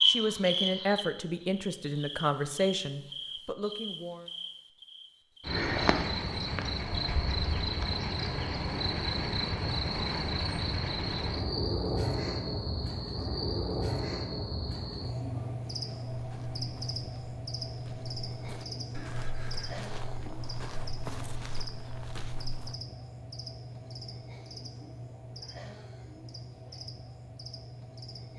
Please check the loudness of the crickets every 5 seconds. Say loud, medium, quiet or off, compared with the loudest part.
loud, loud, loud, medium, medium, quiet.